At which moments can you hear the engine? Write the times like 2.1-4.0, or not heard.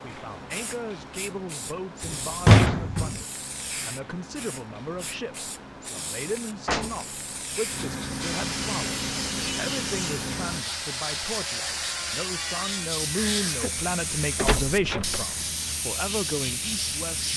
0.0-10.7.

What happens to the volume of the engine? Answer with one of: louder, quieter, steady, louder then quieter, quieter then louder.
louder.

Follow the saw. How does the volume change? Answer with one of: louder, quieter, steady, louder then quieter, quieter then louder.
quieter.